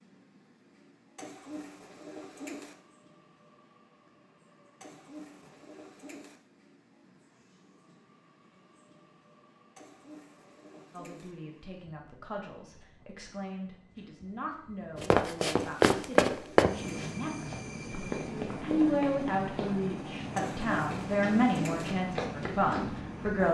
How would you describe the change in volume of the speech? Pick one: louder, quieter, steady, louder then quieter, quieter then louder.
louder.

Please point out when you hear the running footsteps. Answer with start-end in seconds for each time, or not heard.
15.0-23.0.